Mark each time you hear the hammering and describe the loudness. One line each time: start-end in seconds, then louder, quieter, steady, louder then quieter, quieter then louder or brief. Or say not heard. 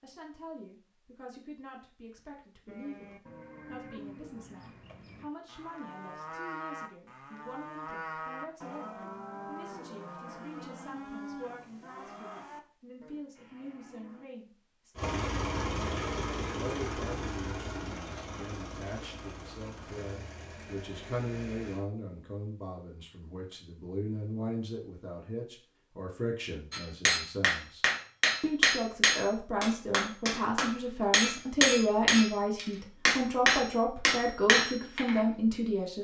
26.7-35.2 steady.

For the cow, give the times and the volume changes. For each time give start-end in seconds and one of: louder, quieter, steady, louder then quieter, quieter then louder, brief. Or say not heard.
2.6-14.2 louder then quieter.